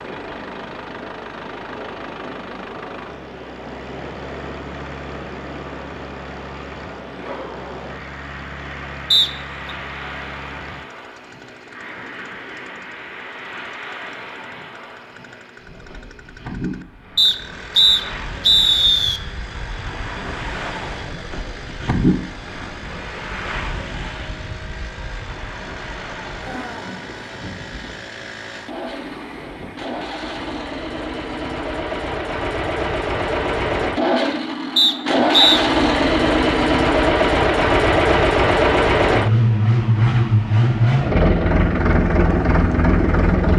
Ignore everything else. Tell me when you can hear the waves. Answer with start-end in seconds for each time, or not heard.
0.0-30.6.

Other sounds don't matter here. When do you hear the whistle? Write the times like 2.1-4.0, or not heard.
9.1-9.7, 17.1-19.2, 34.8-35.6.